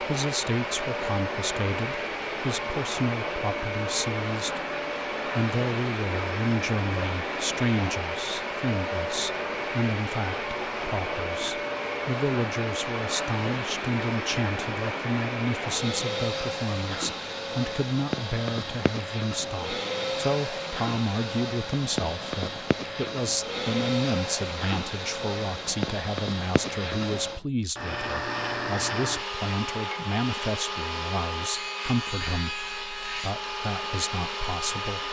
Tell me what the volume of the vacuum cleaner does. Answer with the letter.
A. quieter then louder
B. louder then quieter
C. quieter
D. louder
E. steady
E.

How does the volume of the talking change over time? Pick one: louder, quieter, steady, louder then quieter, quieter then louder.
steady.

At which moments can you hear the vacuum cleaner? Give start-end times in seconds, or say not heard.
0.0-35.0.